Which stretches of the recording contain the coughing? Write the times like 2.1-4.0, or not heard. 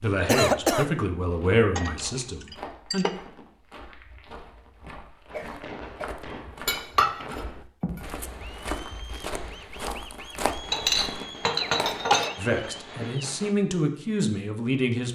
0.2-0.9, 5.3-6.2, 11.6-12.3.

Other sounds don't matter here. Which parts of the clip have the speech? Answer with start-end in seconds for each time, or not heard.
0.0-3.0, 12.3-15.1.